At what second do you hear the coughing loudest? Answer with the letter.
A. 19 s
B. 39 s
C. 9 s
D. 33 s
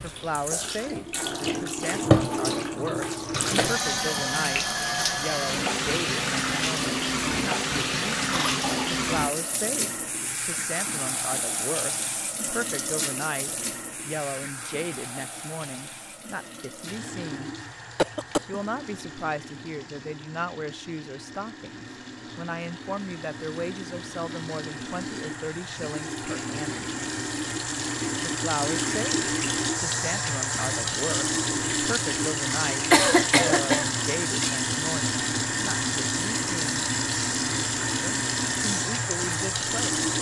D.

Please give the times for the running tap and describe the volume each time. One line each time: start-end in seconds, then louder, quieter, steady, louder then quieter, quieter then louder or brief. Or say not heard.
0.0-40.1 quieter then louder.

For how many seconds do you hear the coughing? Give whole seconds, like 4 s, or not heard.
3 s.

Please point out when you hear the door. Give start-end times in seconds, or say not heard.
not heard.